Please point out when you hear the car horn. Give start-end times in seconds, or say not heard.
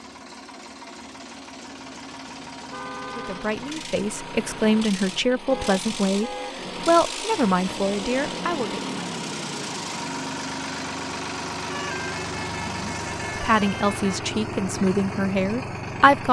2.7-3.5, 5.5-6.5, 11.6-14.2.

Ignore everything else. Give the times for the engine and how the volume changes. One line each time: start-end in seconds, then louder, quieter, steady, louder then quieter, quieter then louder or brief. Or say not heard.
0.0-16.2 louder.